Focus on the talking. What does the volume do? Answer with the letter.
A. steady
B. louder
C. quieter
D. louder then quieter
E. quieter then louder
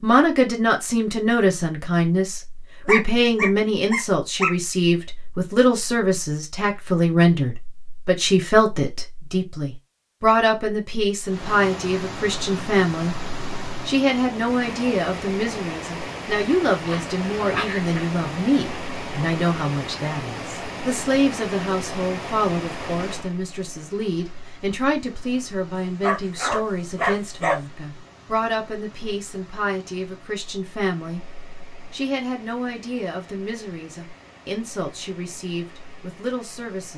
C.